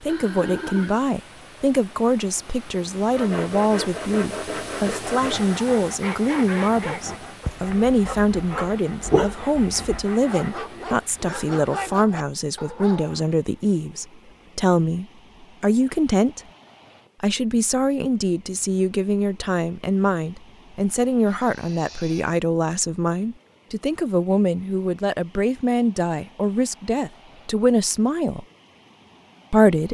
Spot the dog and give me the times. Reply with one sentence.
The dog can be heard from 5.8 to 13.3 s.